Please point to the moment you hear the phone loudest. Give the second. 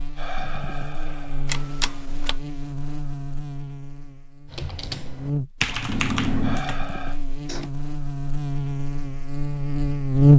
6 s.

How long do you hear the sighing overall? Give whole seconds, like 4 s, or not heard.
2 s.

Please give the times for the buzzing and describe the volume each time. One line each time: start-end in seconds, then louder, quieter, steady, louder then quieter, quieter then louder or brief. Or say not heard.
0.0-10.3 louder.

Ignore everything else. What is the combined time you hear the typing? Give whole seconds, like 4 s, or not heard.
3 s.